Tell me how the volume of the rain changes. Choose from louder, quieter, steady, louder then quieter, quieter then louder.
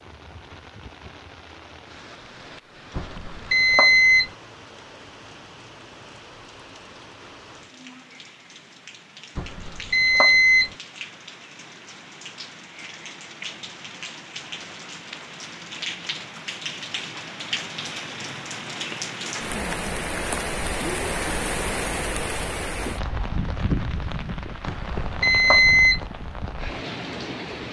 louder.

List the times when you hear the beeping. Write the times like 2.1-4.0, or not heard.
3.0-4.3, 9.3-10.7, 24.6-26.0.